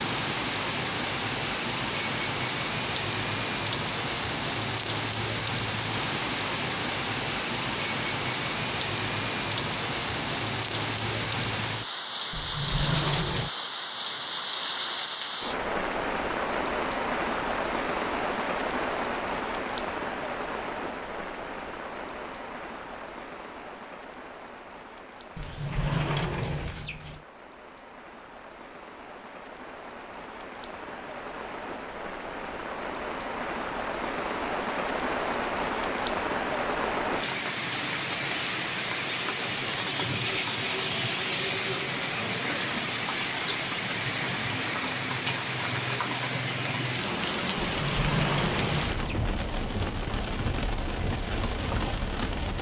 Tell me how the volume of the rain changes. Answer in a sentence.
The volume of the rain goes down, then up.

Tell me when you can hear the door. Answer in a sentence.
You can hear the door from 12.3 to 13.5 s, from 25.4 to 27.2 s and from 47.8 to 49.2 s.